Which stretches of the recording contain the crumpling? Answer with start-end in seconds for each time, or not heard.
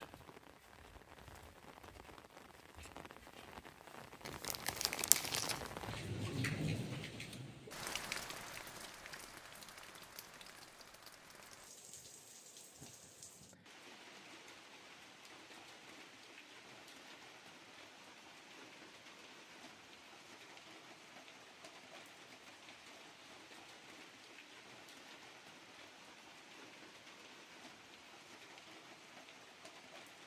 4.2-5.7.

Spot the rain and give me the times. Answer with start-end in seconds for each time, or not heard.
0.0-30.2.